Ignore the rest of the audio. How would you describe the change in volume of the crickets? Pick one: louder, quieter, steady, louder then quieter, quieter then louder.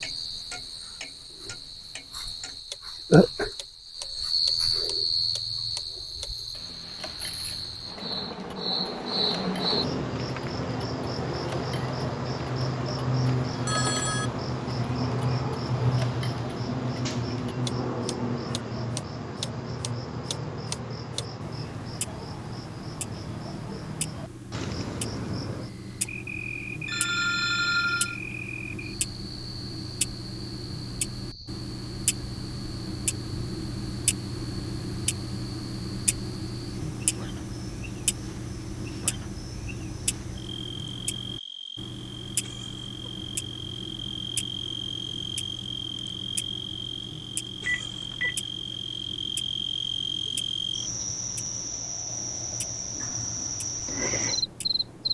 quieter then louder.